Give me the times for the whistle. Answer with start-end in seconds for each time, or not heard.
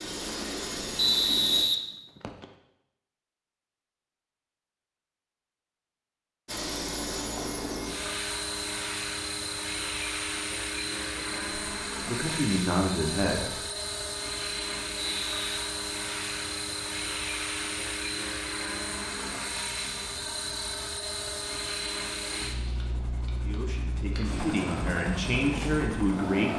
0.9-2.5, 14.9-15.4.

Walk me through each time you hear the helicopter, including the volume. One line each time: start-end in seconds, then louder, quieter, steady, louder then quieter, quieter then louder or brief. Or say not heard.
0.0-1.6 brief
6.5-26.5 steady.